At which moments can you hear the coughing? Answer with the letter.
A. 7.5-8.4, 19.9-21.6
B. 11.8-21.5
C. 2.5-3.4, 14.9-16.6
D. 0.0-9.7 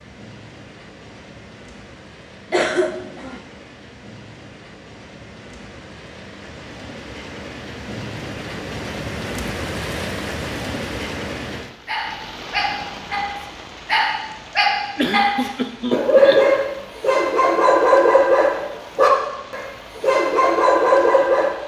C.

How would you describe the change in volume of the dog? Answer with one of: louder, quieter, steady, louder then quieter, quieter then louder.
louder.